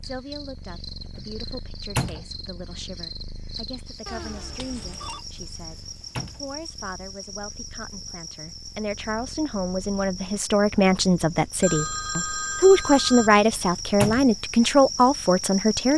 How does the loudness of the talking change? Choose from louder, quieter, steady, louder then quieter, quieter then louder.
louder.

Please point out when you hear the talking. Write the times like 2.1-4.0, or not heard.
0.0-15.9.